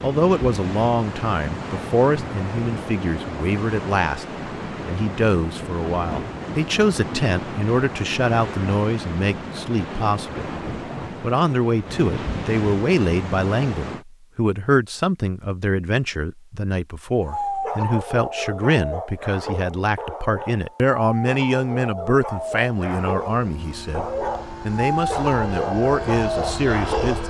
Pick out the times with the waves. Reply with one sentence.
You can hear the waves from 0.0 to 14.1 s.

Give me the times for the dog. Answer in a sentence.
The dog can be heard from 17.2 to 27.2 s.